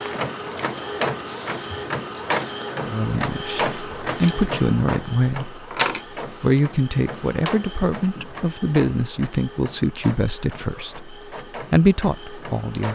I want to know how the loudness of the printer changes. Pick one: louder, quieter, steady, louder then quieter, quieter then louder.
quieter.